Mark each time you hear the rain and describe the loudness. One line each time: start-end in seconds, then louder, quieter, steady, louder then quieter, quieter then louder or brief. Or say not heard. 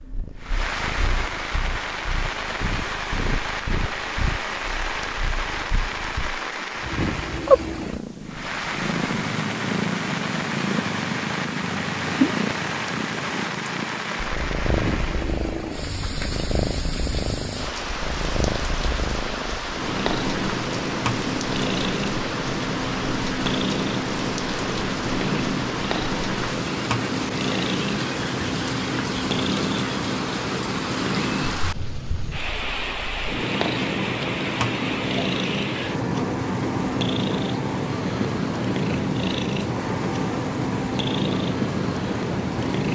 0.0-42.9 steady.